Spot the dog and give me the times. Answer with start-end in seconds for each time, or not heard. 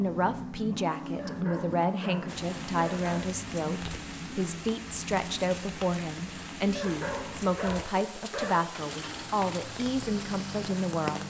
1.1-3.2, 6.8-8.7.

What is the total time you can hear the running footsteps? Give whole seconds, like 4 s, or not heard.
not heard.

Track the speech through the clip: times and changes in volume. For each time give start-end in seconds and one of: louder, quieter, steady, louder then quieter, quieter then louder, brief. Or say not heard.
0.0-11.2 steady.